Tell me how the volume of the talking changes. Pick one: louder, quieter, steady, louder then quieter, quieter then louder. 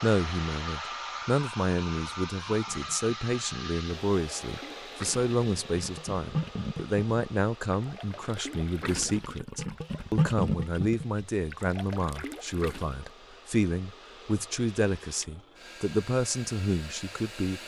steady.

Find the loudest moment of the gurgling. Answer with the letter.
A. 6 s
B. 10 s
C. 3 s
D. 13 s
B.